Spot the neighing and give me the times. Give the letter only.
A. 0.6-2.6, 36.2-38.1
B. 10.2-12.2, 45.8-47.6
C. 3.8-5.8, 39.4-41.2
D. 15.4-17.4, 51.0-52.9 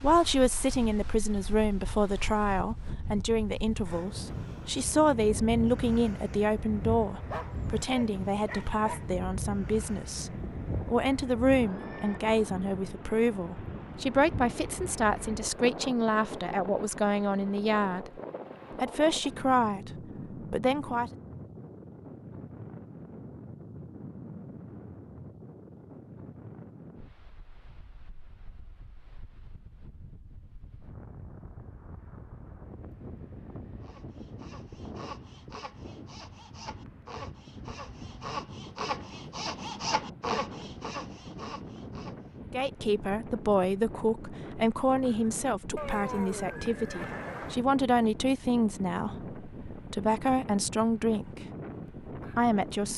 B.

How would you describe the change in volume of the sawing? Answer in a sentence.
The volume of the sawing goes up.